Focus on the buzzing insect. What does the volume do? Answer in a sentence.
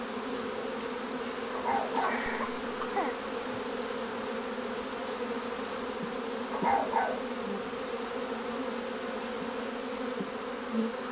The volume of the buzzing insect stays about the same.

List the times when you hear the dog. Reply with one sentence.
The dog can be heard from 1.6 to 2.8 s and from 6.5 to 7.8 s.